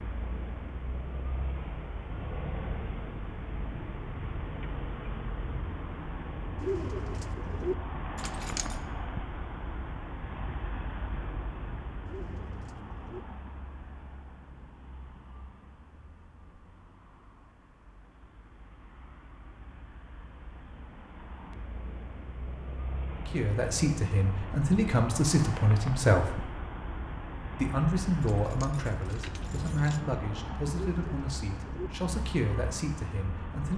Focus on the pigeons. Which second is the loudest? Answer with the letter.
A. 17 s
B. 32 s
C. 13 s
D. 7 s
D.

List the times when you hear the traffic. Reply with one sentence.
The traffic can be heard from 0.0 to 33.7 s.